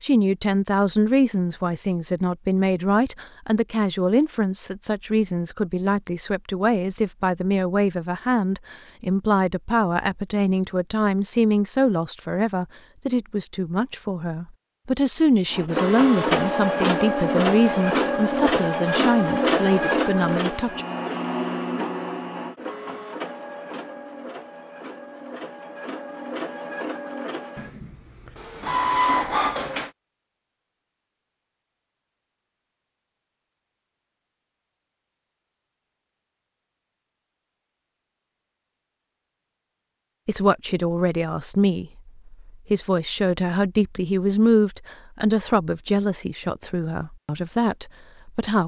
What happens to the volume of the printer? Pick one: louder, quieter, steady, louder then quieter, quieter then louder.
quieter then louder.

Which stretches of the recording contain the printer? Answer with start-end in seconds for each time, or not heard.
15.5-29.9.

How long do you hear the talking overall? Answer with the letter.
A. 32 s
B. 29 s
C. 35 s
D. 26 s
B.